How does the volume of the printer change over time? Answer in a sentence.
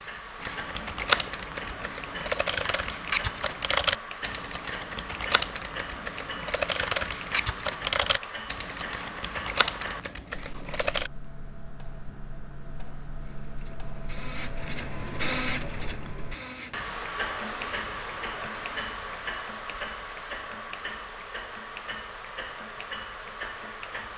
The loudness of the printer goes up, then down.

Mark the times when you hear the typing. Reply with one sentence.
The typing can be heard from 0.4 to 11.1 s.